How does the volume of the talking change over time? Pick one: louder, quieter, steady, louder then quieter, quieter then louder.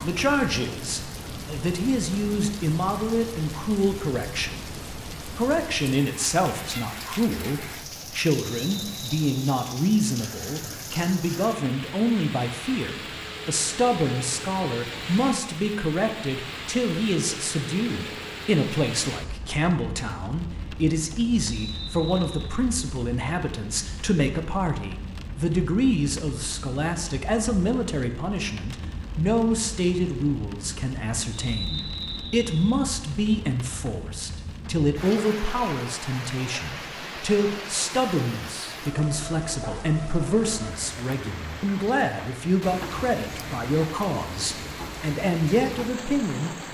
steady.